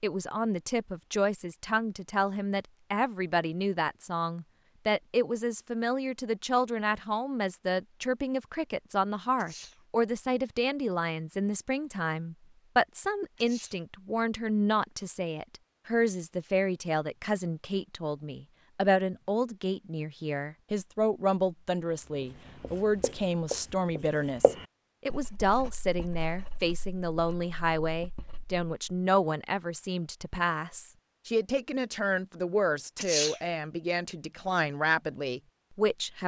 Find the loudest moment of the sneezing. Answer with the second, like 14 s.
33 s.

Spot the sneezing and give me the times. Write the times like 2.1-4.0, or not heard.
9.3-9.8, 13.3-13.8, 33.0-33.4.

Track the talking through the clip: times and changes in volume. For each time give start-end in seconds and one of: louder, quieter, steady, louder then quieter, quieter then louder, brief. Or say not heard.
0.0-36.2 steady.